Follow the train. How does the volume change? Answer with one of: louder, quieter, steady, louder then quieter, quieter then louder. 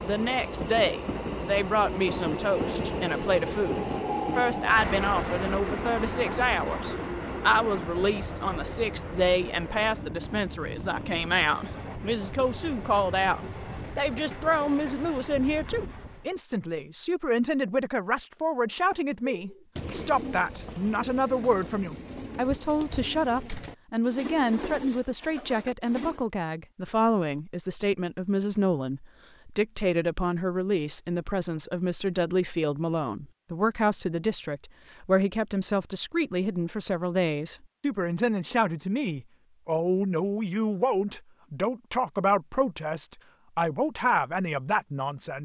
quieter.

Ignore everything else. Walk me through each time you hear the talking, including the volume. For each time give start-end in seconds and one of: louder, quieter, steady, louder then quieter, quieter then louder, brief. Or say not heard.
0.0-45.3 steady.